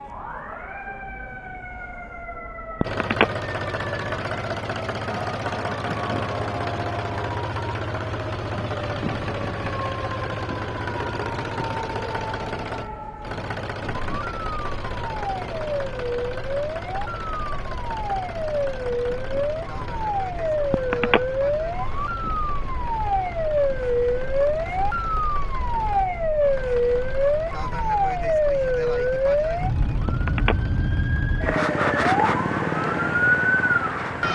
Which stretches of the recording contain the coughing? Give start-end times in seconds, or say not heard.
not heard.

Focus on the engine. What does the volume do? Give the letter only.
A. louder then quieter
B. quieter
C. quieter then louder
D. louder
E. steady
B.